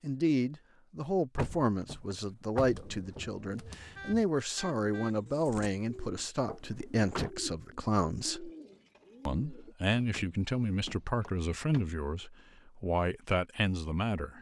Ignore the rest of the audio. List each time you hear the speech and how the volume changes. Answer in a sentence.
The speech can be heard from 0.0 to 8.5 s, at a steady volume; and from 9.2 to 14.3 s, at a steady volume.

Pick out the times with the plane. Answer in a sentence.
The plane can't be heard in this clip.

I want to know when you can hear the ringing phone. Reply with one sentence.
You can't hear the ringing phone here.